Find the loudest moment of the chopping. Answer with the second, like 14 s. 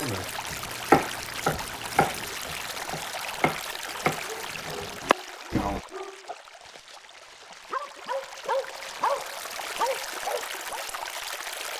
1 s.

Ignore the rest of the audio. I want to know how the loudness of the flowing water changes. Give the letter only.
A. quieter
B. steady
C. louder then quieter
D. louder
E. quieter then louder
E.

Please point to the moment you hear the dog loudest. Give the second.
9 s.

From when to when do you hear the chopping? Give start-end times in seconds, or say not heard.
0.0-5.8.